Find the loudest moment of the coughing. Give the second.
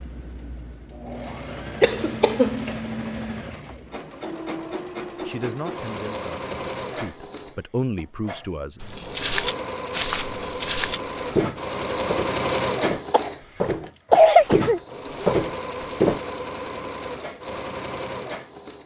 14 s.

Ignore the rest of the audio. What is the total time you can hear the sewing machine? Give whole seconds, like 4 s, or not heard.
19 s.